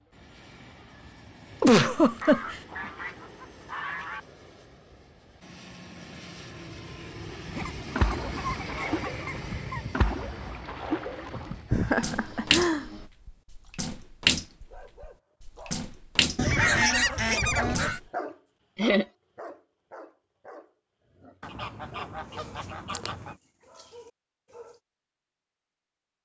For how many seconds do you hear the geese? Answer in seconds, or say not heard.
8 s.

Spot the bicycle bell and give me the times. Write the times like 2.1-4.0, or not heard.
not heard.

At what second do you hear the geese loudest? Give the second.
17 s.